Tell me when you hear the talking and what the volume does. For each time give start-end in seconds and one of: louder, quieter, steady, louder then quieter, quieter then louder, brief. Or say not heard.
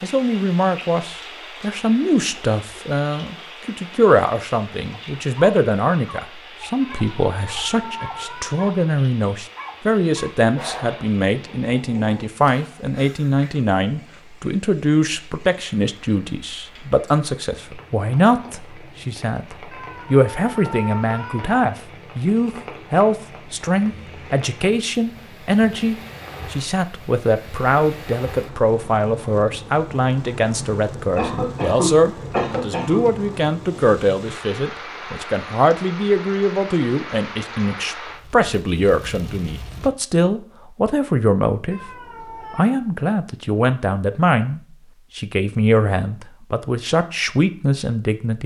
0.0-48.4 steady.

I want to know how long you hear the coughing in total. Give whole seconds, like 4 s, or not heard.
2 s.